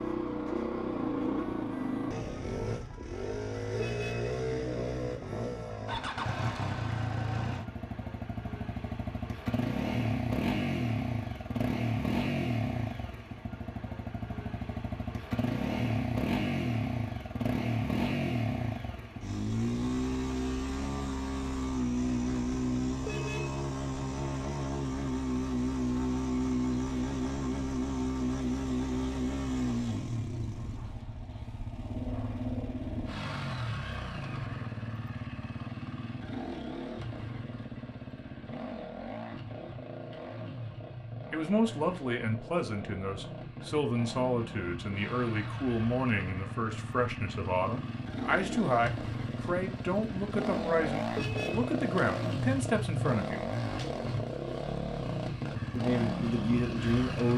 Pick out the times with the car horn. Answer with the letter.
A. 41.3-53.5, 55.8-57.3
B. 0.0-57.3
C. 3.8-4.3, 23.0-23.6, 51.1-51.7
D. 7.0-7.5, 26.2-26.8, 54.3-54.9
C.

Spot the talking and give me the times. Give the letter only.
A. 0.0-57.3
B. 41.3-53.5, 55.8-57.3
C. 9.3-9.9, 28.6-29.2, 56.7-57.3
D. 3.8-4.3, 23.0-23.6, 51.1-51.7
B.